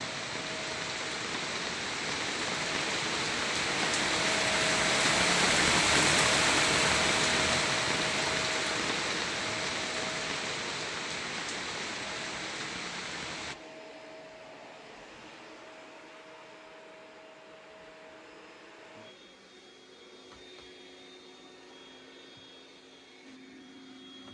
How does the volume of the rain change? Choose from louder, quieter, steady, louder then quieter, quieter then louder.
louder then quieter.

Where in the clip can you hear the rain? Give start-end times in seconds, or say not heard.
0.0-13.6.